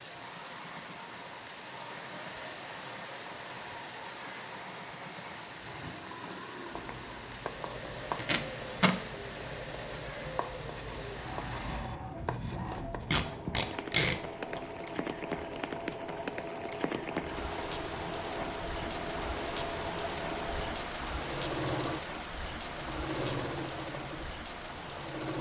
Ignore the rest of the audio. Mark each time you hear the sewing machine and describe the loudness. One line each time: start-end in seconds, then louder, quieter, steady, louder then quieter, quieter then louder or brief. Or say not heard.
0.1-25.3 louder.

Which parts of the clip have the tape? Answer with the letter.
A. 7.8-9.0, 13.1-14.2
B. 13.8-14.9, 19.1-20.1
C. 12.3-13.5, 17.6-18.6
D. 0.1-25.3
A.